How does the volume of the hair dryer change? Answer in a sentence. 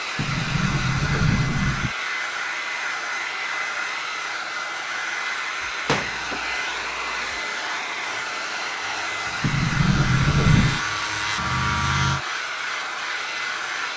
The volume of the hair dryer stays about the same.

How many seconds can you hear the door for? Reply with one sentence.
The door can be heard for 5 seconds in total.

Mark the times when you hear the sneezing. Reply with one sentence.
The sneezing can't be heard in this clip.